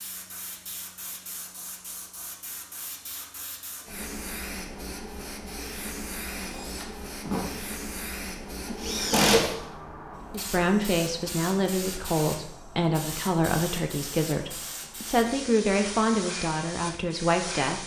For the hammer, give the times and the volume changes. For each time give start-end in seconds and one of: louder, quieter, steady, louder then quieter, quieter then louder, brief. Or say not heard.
not heard.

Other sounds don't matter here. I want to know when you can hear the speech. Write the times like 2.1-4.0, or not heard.
10.3-17.8.